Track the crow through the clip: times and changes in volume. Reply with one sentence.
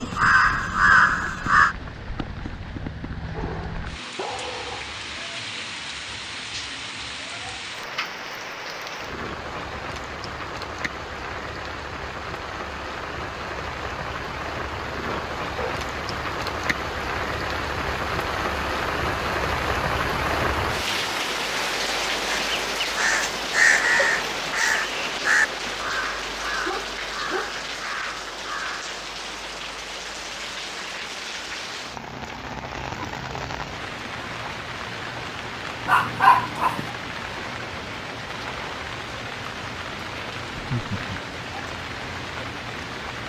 The crow can be heard briefly from 0.0 to 1.8 s; and from 22.2 to 29.0 s, getting quieter.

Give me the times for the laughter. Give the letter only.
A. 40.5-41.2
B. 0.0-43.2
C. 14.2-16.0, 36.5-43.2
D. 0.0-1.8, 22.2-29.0
A.